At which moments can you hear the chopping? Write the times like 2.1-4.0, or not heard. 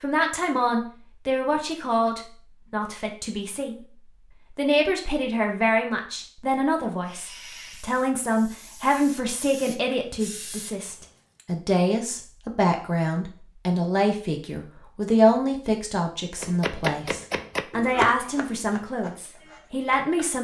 16.4-20.3.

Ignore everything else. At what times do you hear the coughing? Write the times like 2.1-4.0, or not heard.
not heard.